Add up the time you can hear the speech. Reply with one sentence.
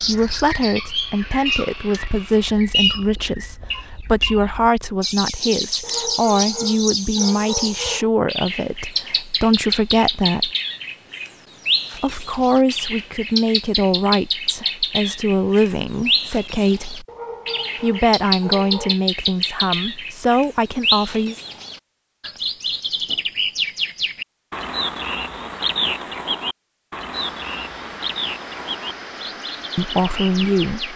The speech can be heard for 20 seconds in total.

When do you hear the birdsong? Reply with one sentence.
You can hear the birdsong from 0.0 to 30.9 s.